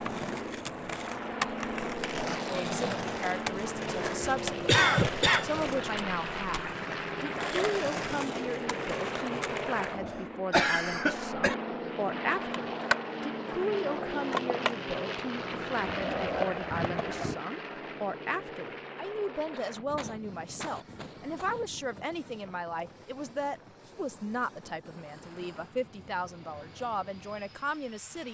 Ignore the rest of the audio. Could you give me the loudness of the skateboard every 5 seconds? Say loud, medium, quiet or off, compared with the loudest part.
loud, medium, loud, loud, off, off.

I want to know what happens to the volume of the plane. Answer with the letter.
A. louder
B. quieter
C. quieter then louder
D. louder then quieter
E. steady
B.